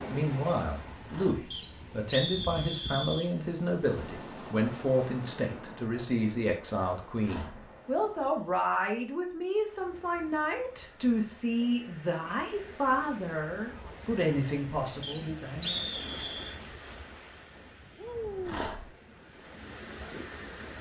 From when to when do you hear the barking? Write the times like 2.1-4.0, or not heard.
1.1-1.5, 7.2-7.7, 18.4-18.9.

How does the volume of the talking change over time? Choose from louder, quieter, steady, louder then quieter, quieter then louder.
steady.